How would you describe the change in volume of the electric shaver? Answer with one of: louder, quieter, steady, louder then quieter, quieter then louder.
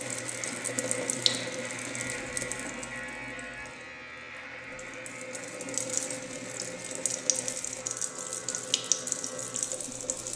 quieter.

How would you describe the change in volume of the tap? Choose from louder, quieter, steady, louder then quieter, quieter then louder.
quieter then louder.